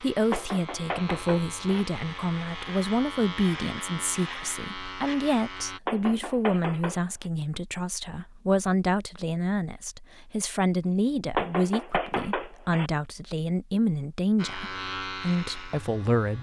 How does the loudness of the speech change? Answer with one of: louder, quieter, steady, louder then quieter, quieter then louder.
steady.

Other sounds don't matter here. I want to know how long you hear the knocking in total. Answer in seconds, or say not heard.
4 s.